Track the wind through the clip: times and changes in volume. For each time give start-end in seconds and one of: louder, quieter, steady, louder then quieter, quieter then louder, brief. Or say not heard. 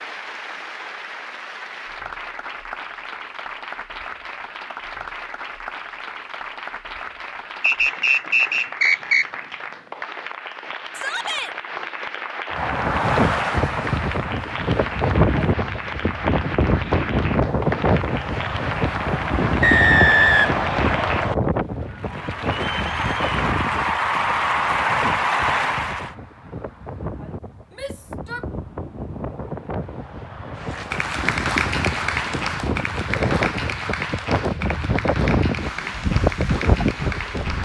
12.5-37.6 quieter then louder.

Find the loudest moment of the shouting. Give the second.
11 s.